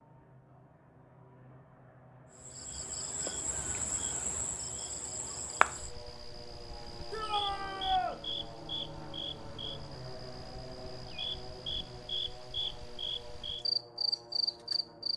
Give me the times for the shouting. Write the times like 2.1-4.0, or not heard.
7.1-8.2.